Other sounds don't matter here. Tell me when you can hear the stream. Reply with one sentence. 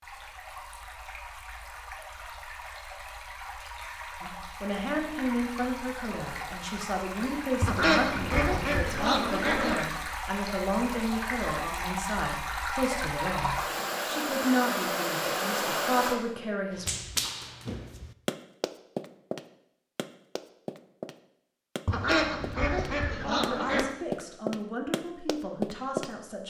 The stream can be heard from 0.0 to 16.2 s.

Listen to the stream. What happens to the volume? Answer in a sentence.
The volume of the stream goes up.